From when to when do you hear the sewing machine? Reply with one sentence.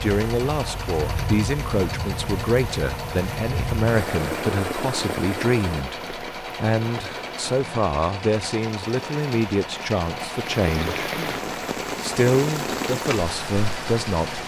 You can hear the sewing machine from 0.0 to 14.4 s.